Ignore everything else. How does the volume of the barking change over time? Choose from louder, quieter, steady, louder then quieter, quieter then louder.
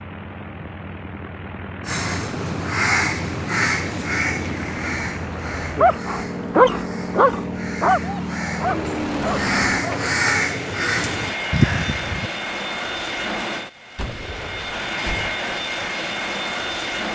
quieter.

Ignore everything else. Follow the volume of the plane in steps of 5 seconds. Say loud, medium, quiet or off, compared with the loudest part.
medium, loud, loud, loud.